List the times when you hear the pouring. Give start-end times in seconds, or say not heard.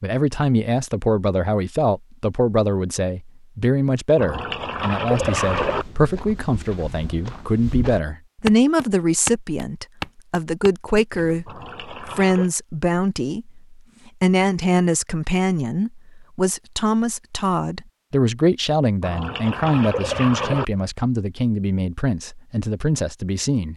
4.2-5.8, 11.4-12.5, 19.0-20.6.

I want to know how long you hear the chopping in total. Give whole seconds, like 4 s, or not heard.
not heard.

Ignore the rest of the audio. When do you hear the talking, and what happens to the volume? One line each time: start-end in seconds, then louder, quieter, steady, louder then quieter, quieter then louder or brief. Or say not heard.
0.0-23.7 steady.